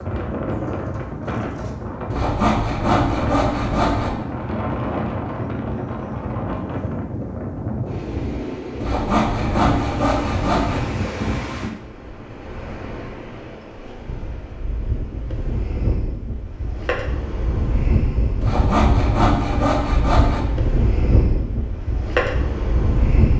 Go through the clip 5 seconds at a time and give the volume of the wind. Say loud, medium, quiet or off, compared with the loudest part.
loud, loud, medium, loud, loud.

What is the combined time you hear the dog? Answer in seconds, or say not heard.
not heard.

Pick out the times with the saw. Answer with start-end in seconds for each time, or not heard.
2.1-4.1, 8.8-10.8, 18.4-20.4.